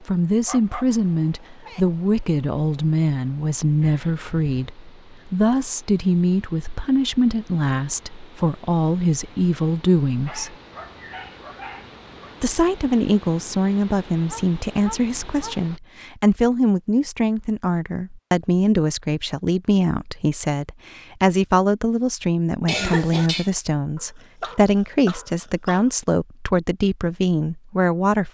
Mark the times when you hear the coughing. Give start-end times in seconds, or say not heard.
3.8-4.6, 22.6-23.5.